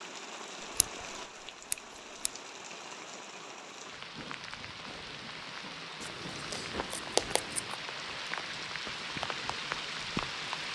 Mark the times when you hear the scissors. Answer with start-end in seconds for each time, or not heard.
1.7-2.3, 6.0-7.8.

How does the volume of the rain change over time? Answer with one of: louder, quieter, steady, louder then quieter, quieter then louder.
louder.